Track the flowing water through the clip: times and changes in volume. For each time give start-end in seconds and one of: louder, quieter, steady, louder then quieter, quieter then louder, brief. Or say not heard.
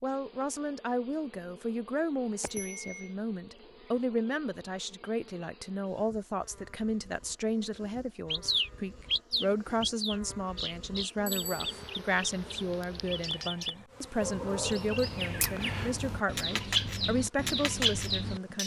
not heard.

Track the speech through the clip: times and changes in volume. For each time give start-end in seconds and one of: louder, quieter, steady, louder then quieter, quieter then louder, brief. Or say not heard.
0.0-18.6 steady.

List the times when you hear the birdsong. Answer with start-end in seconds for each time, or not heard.
8.3-18.6.